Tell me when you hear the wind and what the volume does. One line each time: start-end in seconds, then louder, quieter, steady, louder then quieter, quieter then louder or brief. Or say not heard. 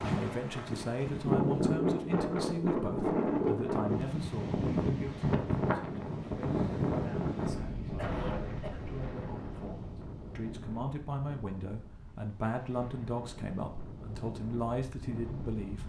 0.0-15.8 quieter.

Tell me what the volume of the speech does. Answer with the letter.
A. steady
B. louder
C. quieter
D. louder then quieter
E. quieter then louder
E.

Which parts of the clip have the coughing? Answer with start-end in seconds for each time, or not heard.
8.0-8.8.